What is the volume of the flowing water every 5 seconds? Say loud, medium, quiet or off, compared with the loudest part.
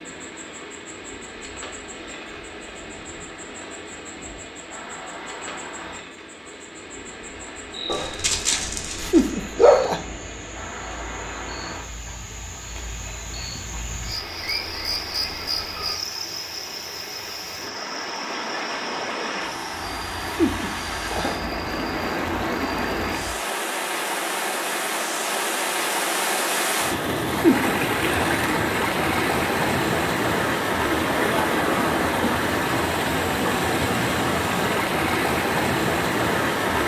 quiet, quiet, quiet, medium, medium, loud, loud, loud.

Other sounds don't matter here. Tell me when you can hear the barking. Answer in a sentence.
You can hear the barking from 7.8 to 9.9 s.